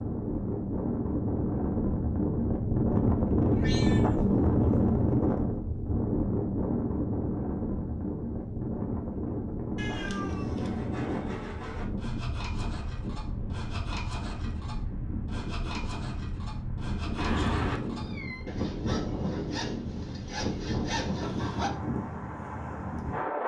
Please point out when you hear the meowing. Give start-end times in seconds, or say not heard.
3.5-4.7, 9.8-10.8, 17.1-18.4.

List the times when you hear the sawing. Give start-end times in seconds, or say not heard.
9.9-21.7.